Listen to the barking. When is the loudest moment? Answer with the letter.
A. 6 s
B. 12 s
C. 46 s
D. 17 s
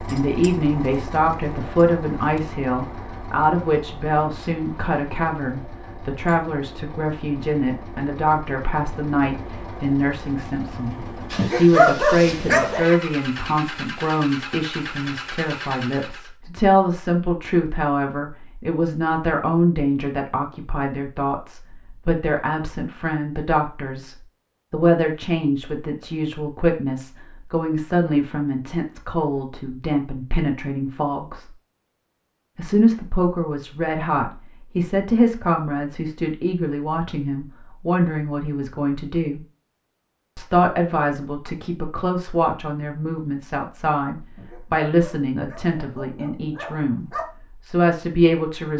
B.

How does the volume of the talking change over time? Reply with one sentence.
The volume of the talking stays about the same.